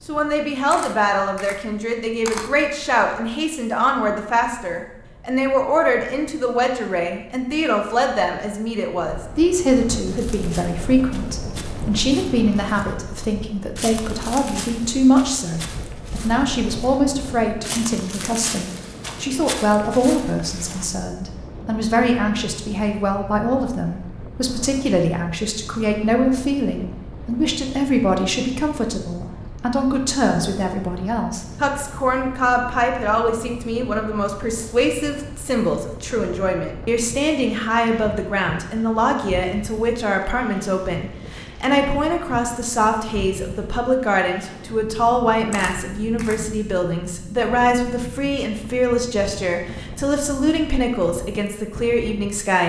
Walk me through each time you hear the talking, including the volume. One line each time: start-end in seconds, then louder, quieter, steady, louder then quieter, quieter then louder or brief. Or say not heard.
0.1-52.6 steady.